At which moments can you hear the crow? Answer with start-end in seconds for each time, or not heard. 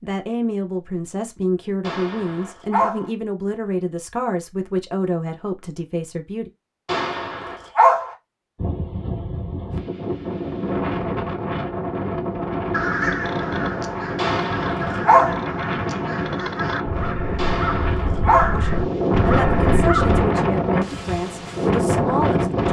12.7-20.2.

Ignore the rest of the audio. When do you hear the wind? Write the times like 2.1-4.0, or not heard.
8.6-22.6.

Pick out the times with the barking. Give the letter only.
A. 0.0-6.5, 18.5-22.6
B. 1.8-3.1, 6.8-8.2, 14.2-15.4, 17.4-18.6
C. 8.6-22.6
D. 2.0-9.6
B.